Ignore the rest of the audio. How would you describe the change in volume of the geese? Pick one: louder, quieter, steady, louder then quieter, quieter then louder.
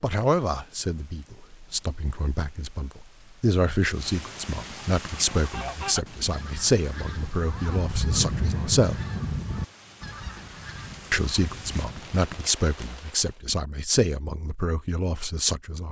louder then quieter.